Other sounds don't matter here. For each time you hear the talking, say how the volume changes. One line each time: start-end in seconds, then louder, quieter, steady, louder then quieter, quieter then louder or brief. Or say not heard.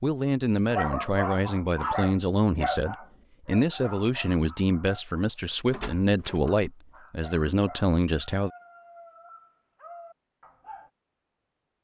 0.0-8.5 steady.